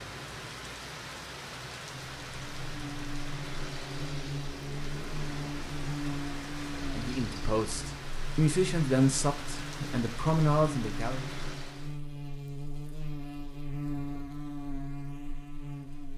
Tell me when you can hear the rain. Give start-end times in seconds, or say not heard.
0.0-12.0.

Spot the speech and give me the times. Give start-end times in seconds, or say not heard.
6.9-11.2.